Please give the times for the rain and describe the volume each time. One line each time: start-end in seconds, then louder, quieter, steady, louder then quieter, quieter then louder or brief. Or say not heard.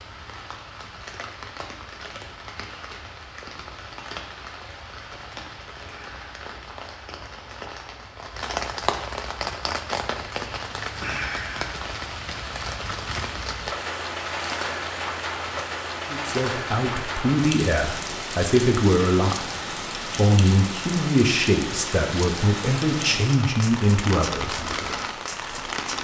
0.0-25.9 louder.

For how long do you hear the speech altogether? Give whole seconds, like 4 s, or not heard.
9 s.